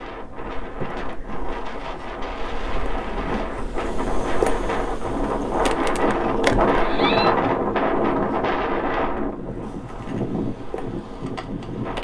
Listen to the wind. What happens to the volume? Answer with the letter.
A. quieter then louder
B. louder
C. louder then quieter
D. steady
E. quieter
C.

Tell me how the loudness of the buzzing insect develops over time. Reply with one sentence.
The loudness of the buzzing insect goes up, then down.